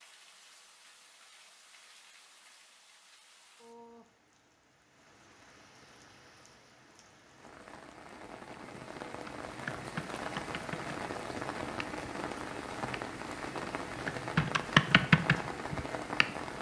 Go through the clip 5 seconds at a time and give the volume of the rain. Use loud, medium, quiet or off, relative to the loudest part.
quiet, medium, loud, loud.